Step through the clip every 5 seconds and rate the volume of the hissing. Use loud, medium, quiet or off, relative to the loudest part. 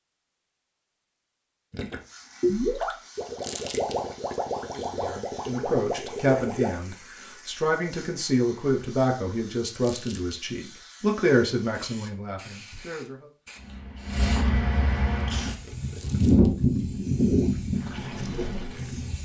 quiet, quiet, medium, loud.